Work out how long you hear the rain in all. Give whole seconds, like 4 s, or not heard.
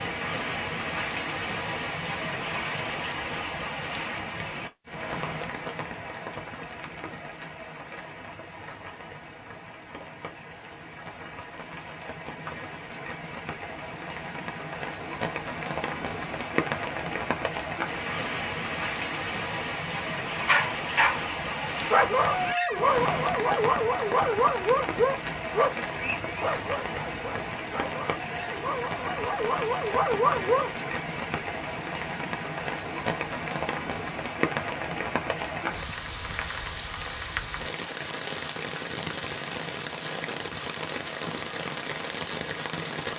43 s.